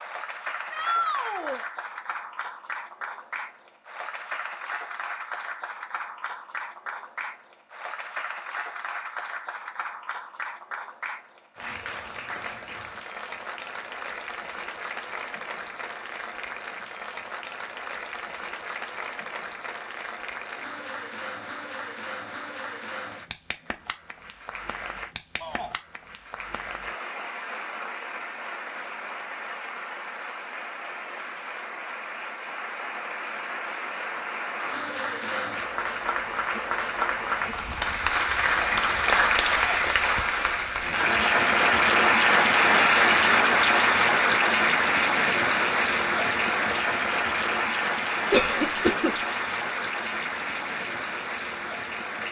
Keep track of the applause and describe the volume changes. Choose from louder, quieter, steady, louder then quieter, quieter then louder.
louder.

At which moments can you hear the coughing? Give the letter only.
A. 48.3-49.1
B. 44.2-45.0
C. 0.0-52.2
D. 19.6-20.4
A.